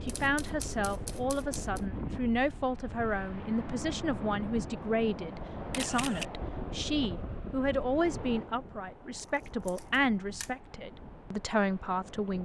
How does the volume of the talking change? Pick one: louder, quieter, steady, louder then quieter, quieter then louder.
steady.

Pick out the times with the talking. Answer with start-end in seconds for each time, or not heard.
0.0-12.4.